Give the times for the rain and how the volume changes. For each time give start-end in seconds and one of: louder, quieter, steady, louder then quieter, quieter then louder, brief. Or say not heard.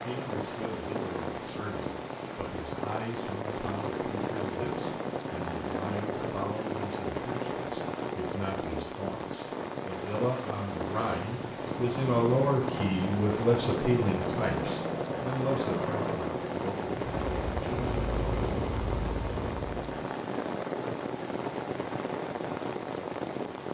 0.0-23.7 steady.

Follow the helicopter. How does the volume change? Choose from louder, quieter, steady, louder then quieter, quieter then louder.
steady.